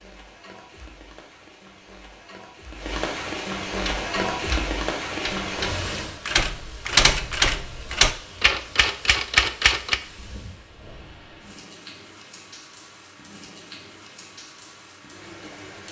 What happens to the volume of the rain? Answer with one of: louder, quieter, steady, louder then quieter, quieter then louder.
louder then quieter.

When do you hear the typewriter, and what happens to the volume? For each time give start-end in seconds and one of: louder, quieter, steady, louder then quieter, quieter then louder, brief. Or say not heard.
3.8-10.0 louder.